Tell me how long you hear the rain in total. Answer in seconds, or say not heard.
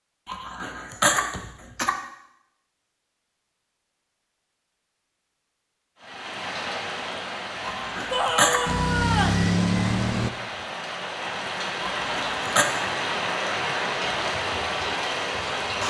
10 s.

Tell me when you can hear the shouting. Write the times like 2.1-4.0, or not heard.
8.1-9.4.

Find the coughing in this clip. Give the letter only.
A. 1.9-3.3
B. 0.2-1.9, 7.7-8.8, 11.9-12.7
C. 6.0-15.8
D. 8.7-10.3
B.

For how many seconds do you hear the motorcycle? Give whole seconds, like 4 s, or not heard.
2 s.